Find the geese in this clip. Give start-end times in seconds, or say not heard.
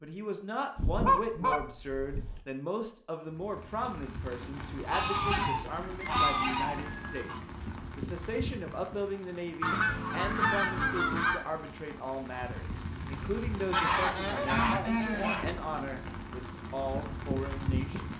0.8-2.4, 4.8-7.4, 9.6-11.4, 13.7-15.4.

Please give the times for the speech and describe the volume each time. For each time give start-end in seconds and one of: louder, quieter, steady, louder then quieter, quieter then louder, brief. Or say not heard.
0.0-18.1 steady.